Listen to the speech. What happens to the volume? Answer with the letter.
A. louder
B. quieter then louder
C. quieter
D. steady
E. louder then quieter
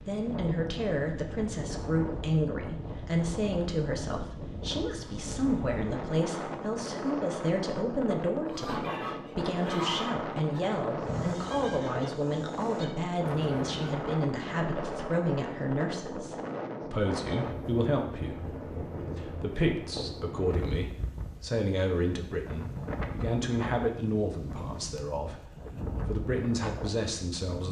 D.